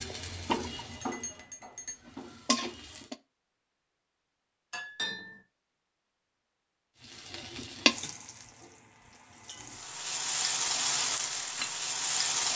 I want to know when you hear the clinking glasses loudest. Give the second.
5 s.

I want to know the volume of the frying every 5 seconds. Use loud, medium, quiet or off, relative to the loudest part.
medium, medium, loud.